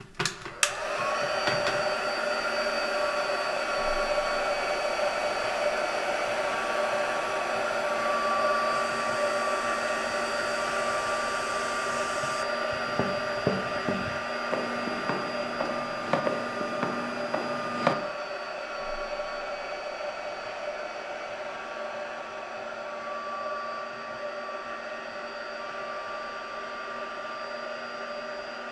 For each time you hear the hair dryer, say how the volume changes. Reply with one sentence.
You can hear the hair dryer from 0.0 to 28.6 s, getting quieter.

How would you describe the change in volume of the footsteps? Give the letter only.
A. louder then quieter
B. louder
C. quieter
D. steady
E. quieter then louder
B.